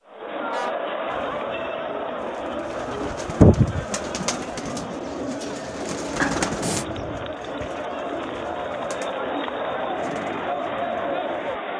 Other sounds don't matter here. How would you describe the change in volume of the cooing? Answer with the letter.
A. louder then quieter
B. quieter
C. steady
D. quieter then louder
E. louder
A.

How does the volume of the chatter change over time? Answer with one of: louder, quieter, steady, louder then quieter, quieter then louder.
quieter then louder.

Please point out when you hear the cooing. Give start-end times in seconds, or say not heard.
1.1-11.6.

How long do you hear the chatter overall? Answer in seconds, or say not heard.
12 s.